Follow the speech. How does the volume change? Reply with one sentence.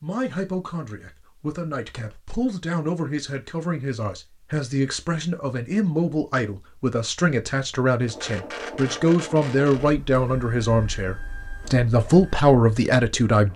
The loudness of the speech goes up.